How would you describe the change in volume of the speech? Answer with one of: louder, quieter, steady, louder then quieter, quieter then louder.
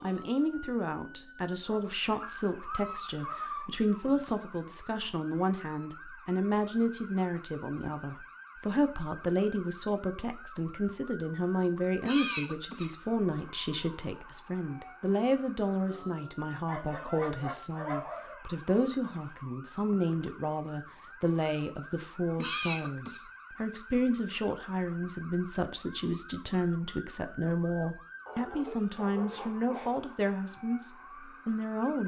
steady.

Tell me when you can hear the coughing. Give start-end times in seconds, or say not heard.
12.0-12.9, 22.4-23.2.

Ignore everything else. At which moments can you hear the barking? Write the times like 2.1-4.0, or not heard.
1.6-3.6, 16.6-18.4, 28.2-30.1.